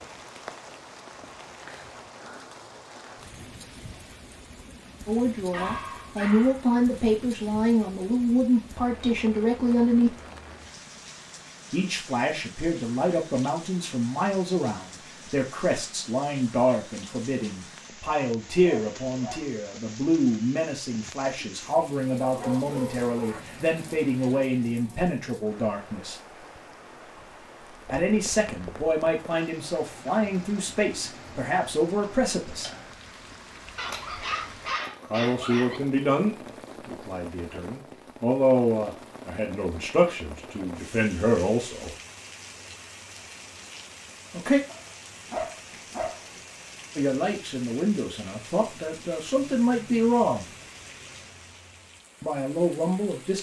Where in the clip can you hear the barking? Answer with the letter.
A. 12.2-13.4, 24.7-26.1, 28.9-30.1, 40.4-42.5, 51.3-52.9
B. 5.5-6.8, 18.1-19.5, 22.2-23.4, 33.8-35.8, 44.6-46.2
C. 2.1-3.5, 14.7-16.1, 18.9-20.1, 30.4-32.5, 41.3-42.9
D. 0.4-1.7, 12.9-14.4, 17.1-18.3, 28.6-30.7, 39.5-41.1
B.